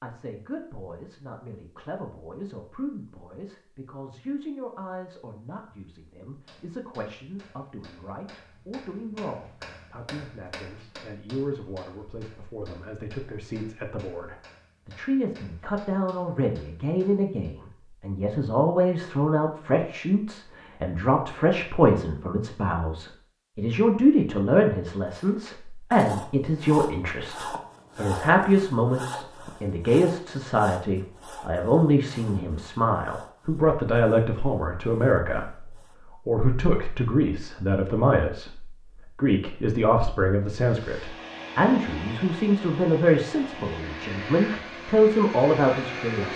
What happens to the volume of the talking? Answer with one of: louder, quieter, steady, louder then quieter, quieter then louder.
louder.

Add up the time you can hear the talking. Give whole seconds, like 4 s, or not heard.
46 s.